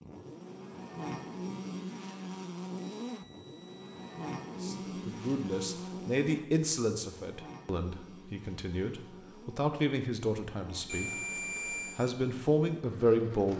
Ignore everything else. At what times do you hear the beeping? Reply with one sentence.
You can hear the beeping from 3.0 to 4.3 s and from 10.8 to 12.0 s.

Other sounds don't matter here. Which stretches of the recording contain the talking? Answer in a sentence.
The talking can be heard from 4.5 to 13.5 s.